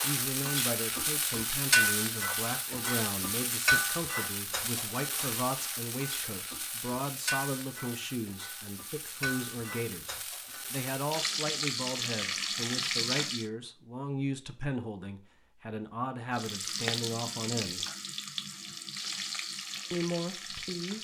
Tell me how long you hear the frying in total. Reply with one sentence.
You can hear the frying for 18 seconds altogether.